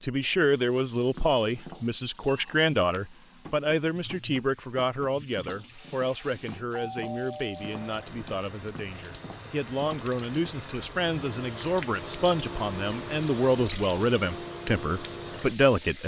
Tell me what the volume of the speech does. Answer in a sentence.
The volume of the speech goes down, then up.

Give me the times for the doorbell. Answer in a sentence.
The doorbell can be heard from 6.7 to 7.9 s.